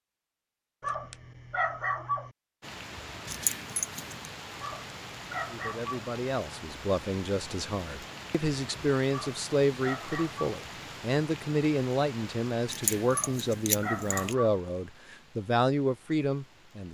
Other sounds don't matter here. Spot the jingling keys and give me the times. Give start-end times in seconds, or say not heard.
3.2-4.3, 12.7-14.3.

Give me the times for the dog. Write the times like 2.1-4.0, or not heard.
0.8-2.3, 4.6-6.1, 9.1-10.6, 13.1-14.6.